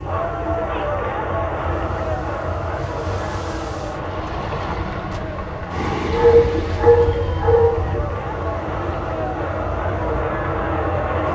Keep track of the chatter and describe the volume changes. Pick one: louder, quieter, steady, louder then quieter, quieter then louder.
quieter then louder.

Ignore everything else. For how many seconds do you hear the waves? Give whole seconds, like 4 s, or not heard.
11 s.